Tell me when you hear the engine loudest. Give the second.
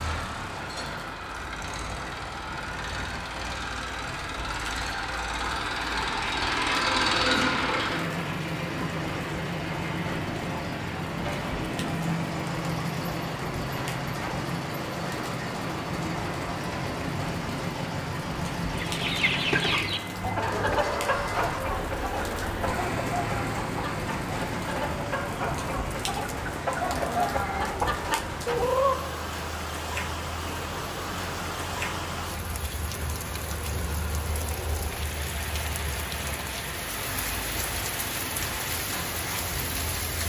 7 s.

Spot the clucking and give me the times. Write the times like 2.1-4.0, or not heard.
18.7-29.1.